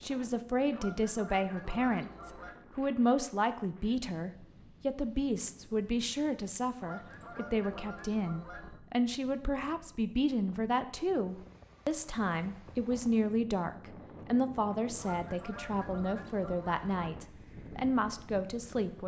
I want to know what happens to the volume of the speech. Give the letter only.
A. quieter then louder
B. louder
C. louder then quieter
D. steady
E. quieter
D.